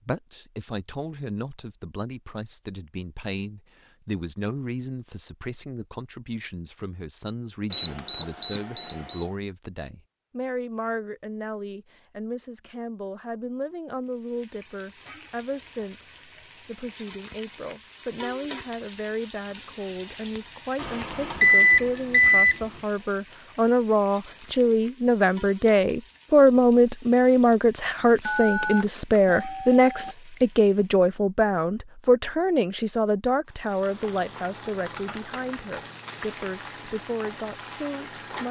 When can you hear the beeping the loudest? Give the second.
22 s.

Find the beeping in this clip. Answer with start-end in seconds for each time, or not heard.
7.7-9.2, 20.8-22.6, 28.2-30.1.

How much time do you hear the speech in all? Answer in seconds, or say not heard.
38 s.